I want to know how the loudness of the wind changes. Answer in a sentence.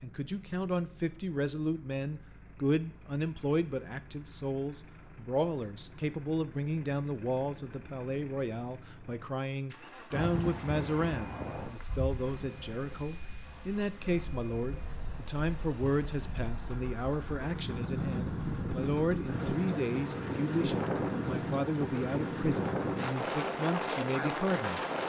The loudness of the wind goes down, then up.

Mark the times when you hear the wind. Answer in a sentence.
The wind can be heard from 10.1 to 25.0 s.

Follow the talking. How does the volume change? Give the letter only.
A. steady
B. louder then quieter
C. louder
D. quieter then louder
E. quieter
A.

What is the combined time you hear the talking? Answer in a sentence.
You can hear the talking for 25 seconds altogether.